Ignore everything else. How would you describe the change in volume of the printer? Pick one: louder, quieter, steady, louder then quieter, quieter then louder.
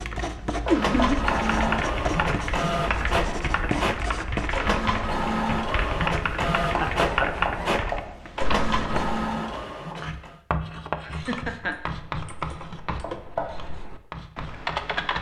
steady.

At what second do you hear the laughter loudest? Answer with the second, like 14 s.
1 s.